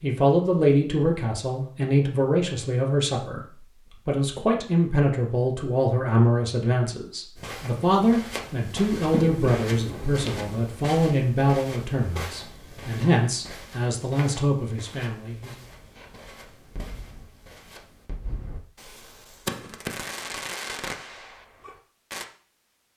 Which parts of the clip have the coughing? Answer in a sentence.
The coughing can be heard from 8.9 to 10.6 s.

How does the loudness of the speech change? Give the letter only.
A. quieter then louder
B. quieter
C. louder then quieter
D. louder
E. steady
E.